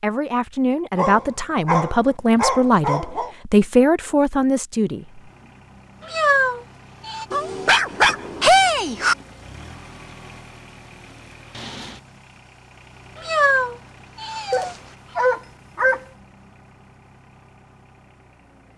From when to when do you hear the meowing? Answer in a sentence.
The meowing can be heard from 6.0 to 7.2 s and from 13.2 to 15.4 s.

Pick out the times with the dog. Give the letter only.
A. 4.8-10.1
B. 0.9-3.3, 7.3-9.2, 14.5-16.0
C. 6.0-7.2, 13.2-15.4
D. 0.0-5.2
B.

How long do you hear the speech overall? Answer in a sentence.
The speech can be heard for 5 seconds in total.